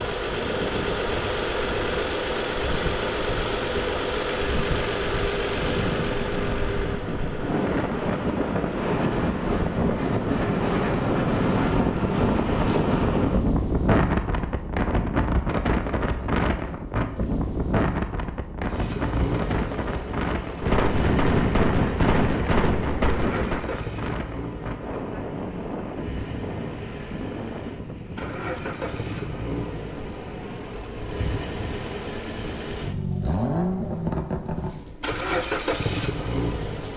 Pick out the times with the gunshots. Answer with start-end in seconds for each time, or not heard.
20.6-23.6.